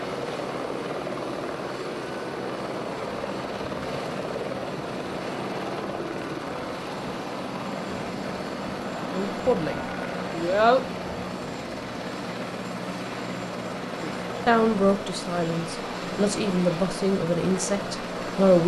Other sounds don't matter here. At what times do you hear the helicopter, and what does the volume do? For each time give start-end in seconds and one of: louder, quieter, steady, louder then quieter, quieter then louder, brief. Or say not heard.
0.0-18.6 steady.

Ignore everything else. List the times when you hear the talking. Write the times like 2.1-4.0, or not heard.
9.1-11.0, 14.0-18.6.